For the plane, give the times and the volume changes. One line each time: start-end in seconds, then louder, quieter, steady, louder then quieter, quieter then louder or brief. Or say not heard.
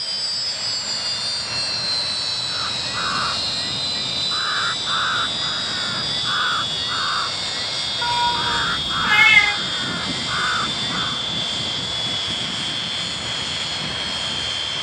0.0-14.7 steady.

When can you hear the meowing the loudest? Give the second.
9 s.